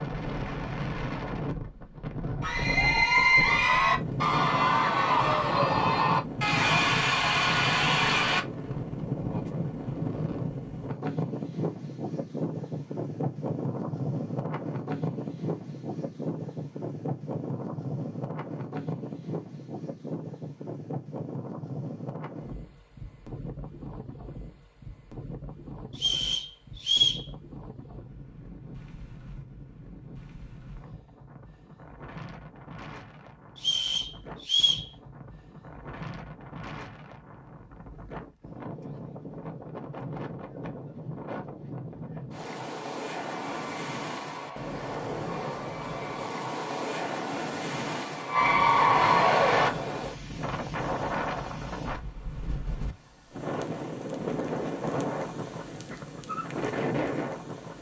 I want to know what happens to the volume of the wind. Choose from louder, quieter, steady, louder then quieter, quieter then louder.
quieter then louder.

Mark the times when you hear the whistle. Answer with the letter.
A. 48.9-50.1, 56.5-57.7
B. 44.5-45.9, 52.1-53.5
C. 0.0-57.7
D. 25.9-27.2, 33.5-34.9
D.